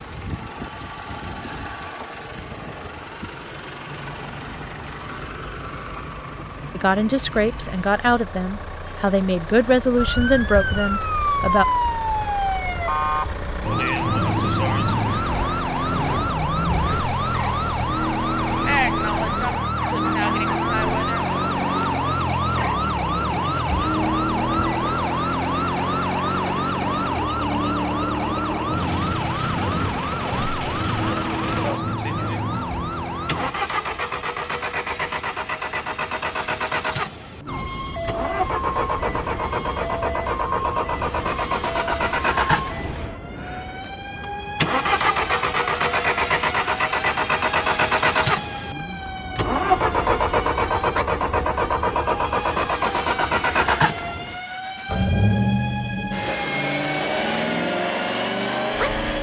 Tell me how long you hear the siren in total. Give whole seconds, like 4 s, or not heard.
45 s.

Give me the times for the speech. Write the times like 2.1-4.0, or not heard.
6.8-11.7.